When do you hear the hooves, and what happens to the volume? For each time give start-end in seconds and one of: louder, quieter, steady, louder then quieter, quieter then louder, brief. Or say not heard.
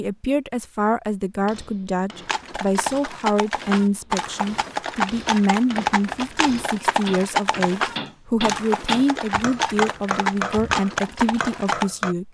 2.2-11.9 steady.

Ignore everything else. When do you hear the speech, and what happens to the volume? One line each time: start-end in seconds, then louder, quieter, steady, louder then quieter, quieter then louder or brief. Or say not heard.
0.0-12.3 steady.